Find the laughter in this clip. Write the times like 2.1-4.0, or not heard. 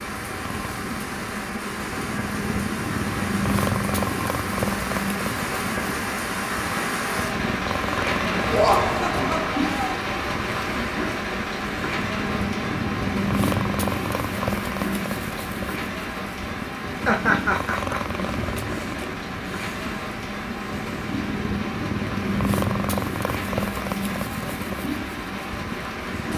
8.5-9.9, 17.1-18.1.